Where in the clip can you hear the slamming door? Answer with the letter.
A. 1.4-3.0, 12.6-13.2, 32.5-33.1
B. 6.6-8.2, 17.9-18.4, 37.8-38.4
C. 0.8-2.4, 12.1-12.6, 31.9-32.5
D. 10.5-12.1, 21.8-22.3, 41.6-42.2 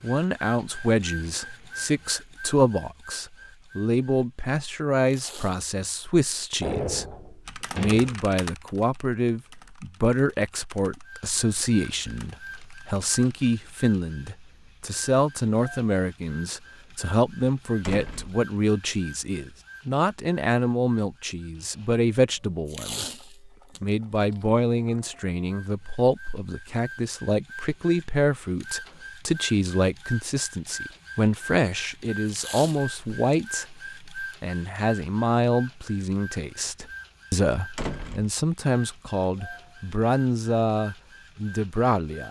B.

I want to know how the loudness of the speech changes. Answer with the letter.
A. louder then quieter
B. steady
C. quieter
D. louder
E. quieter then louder
B.